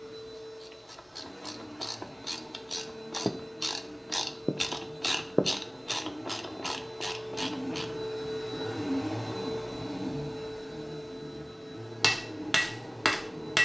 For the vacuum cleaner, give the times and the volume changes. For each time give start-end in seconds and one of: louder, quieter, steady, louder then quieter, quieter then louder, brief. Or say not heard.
0.0-13.6 louder then quieter.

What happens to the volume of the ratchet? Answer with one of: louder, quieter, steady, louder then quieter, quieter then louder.
louder then quieter.